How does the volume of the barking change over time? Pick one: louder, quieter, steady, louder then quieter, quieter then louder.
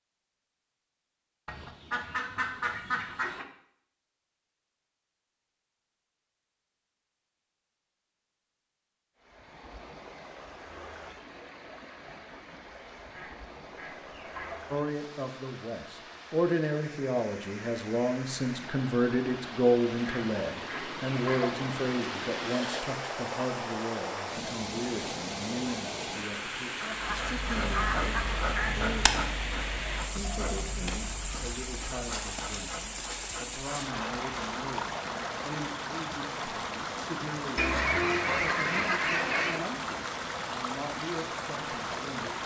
quieter.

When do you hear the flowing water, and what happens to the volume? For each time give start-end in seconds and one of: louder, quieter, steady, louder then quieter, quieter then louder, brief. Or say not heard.
9.2-42.4 louder.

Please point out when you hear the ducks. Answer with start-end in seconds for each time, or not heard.
1.4-3.5, 13.1-14.7, 20.0-21.6, 26.8-28.7, 37.5-39.6.